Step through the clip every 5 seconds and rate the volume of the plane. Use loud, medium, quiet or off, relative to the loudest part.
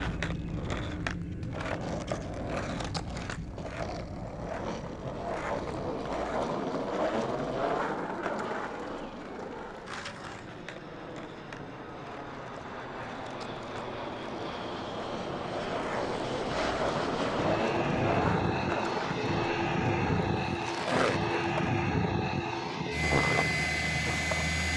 medium, quiet, medium, loud, loud.